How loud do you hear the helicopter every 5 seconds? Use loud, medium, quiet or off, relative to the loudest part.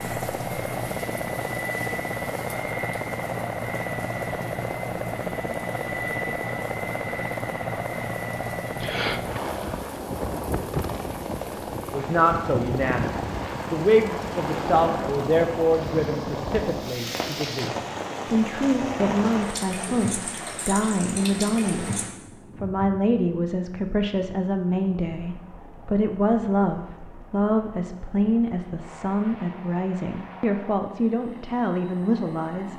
loud, loud, loud, loud, quiet, quiet, quiet.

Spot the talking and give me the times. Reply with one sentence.
You can hear the talking from 11.9 to 21.9 s and from 22.6 to 32.7 s.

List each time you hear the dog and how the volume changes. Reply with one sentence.
The dog can't be heard in this clip.